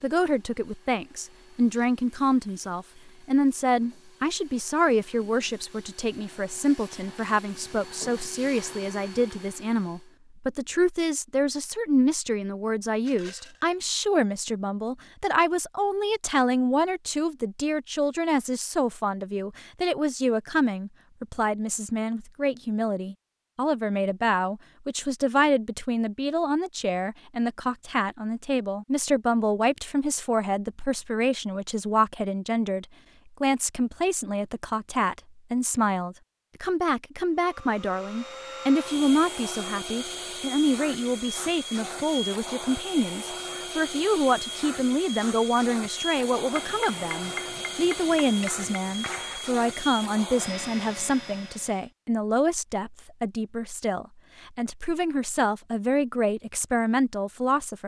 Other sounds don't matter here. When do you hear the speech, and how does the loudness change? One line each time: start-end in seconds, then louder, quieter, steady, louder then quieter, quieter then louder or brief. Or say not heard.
0.0-57.8 steady.